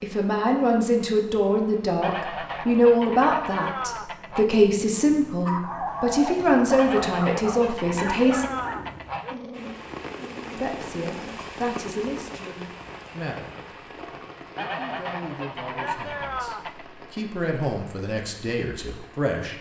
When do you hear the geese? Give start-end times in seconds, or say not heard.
2.0-4.5, 6.8-9.3, 14.6-16.9.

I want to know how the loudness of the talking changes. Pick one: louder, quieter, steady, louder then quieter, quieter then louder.
quieter then louder.